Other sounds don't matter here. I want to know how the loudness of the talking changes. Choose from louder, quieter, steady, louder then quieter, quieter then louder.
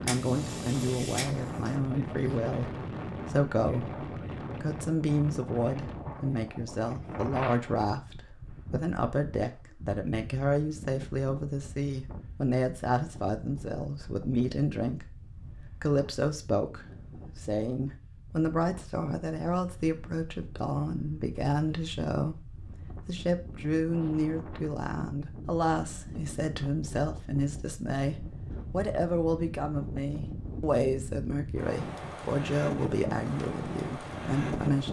steady.